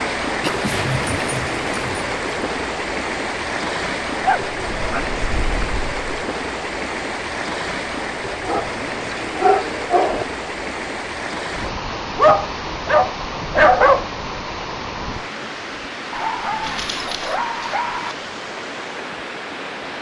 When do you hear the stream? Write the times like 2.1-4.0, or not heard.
0.0-19.9.